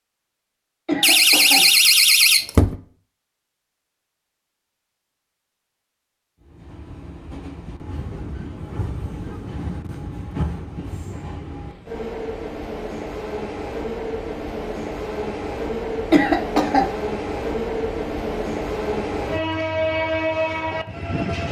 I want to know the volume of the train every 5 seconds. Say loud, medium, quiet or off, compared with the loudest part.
off, medium, medium, loud, loud.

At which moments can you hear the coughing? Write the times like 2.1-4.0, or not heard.
0.8-1.6, 16.1-16.9.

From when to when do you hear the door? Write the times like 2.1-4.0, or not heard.
1.0-2.8.